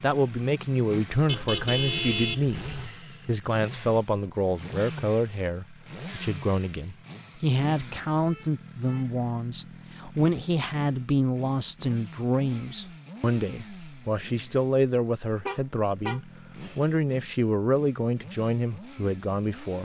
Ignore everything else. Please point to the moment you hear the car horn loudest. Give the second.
2 s.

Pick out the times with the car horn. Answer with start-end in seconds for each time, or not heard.
1.2-3.0, 8.2-9.2, 15.4-16.9.